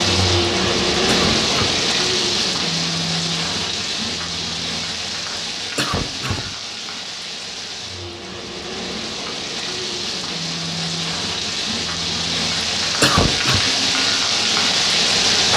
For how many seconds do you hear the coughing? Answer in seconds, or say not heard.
2 s.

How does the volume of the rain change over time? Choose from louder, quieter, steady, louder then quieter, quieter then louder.
quieter then louder.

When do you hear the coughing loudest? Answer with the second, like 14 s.
13 s.